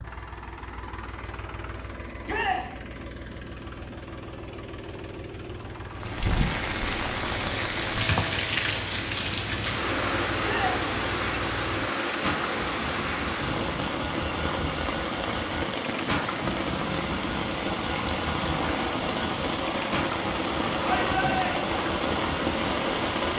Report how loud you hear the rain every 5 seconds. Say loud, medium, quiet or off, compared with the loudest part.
off, loud, loud, loud, loud.